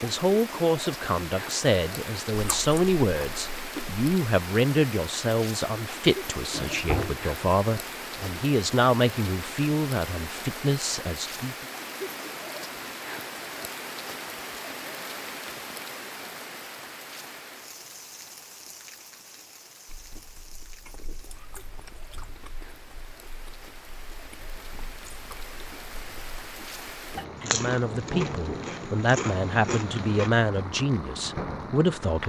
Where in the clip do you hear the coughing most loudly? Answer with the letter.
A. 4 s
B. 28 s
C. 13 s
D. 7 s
D.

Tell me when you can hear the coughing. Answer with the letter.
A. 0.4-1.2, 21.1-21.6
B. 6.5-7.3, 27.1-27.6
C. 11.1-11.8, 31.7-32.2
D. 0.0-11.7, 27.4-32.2
B.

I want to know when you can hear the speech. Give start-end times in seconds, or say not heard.
0.0-11.7, 27.4-32.2.